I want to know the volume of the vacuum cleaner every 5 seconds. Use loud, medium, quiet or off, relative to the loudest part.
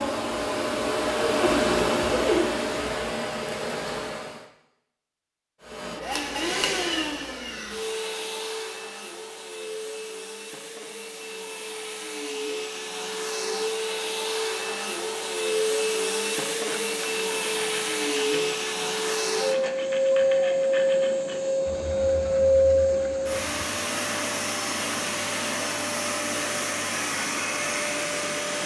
loud, medium, medium, loud, loud, medium.